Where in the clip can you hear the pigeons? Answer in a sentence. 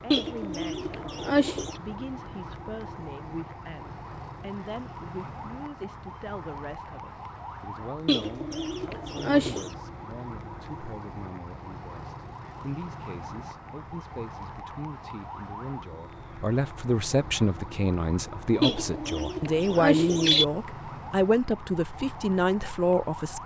The pigeons can be heard from 0.1 to 1.8 s, from 8.1 to 9.7 s and from 18.6 to 20.4 s.